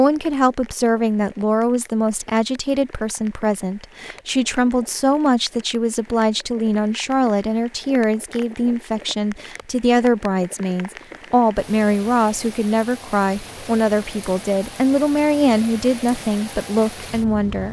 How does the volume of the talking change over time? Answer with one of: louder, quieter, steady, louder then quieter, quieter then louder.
steady.